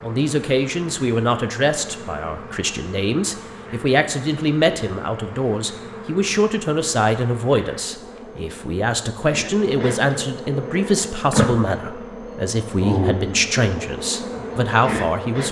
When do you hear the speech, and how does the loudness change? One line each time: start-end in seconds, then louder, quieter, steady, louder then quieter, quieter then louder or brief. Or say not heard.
0.0-15.4 steady.